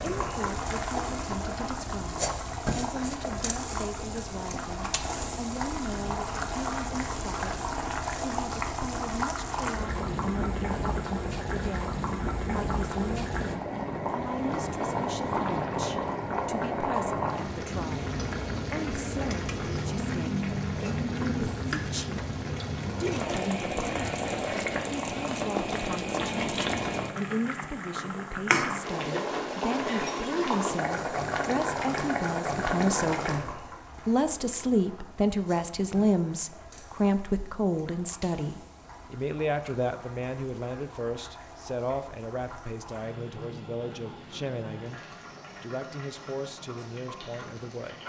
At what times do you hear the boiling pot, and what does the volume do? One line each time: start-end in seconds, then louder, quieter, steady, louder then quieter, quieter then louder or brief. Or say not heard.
0.0-48.0 quieter.